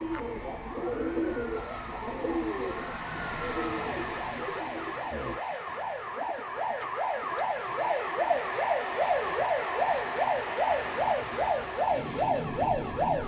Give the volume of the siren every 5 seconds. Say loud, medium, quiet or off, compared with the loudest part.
quiet, loud, loud.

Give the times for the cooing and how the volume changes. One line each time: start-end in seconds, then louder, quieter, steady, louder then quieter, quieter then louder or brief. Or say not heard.
0.0-8.2 quieter.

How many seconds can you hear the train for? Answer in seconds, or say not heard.
13 s.